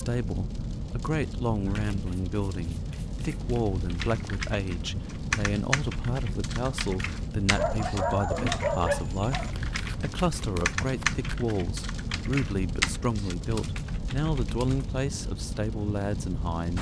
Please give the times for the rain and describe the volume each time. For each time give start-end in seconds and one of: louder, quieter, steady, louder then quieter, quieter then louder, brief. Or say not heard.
0.0-16.7 steady.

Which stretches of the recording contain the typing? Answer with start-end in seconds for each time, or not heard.
3.5-15.0.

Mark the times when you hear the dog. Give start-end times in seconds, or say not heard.
7.5-9.5.